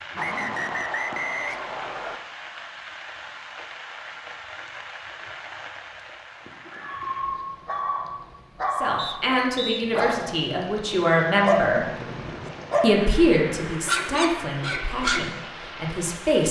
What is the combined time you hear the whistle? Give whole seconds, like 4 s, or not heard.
3 s.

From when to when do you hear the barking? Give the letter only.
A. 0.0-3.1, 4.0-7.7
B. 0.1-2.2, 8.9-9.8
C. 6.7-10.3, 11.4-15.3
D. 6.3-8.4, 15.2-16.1
C.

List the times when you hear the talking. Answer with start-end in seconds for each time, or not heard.
8.8-11.9, 12.8-16.4.